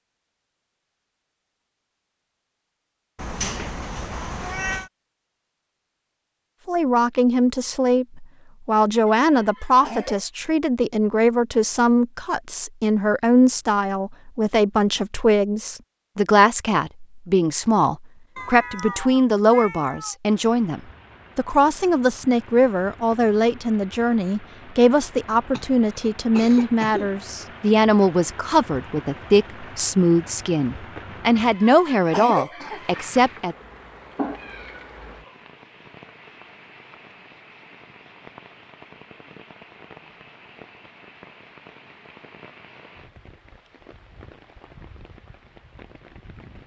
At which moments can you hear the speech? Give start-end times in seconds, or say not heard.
6.7-33.5.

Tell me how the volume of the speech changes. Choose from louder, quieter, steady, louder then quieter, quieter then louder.
steady.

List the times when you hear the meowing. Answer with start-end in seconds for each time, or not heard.
3.1-4.9, 18.4-20.1, 34.1-35.4.